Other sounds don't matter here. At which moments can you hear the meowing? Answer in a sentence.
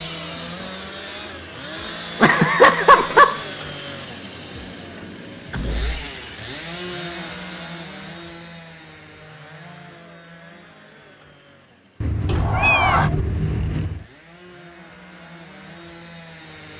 The meowing can be heard from 2.2 to 3.4 s and from 12.0 to 14.1 s.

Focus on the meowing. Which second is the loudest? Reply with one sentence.
The loudest moment of the meowing is at 3 seconds.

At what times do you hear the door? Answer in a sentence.
The door can be heard from 5.5 to 6.0 s and from 12.2 to 13.1 s.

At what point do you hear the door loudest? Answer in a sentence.
The volume of the door peaks at 13 seconds.